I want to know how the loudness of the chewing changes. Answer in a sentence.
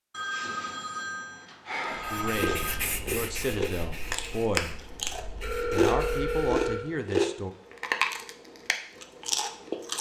The loudness of the chewing goes up, then down.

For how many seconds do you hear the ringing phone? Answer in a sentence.
You can hear the ringing phone for 4 seconds altogether.